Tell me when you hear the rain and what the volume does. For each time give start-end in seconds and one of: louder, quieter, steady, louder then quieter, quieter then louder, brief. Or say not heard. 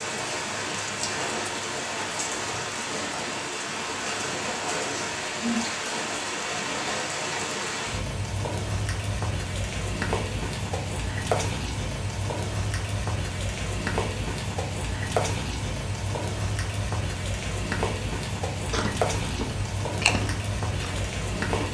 0.0-21.6 steady.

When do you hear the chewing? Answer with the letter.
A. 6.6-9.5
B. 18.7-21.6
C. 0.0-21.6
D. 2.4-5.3
B.